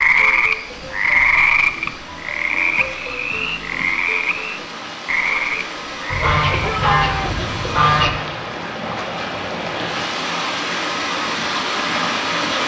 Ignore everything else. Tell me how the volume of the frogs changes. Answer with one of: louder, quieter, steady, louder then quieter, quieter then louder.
quieter.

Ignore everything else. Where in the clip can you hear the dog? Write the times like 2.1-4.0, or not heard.
not heard.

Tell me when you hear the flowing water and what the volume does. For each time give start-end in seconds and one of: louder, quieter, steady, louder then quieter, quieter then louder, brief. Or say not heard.
0.0-12.6 louder.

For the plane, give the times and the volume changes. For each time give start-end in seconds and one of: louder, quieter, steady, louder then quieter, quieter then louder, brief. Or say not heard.
not heard.